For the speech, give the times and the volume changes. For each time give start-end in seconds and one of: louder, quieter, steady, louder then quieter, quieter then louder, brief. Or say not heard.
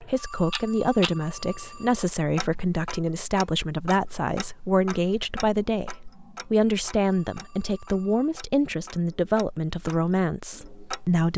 0.0-11.3 steady.